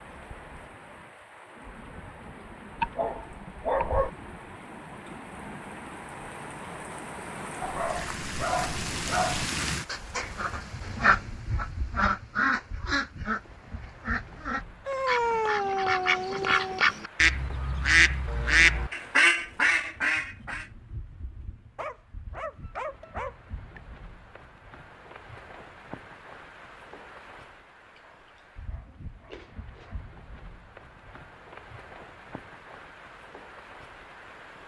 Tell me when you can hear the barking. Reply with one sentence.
The barking can be heard from 2.8 to 4.1 s, from 7.6 to 9.4 s, from 14.8 to 16.8 s, from 21.8 to 23.8 s and from 27.9 to 30.0 s.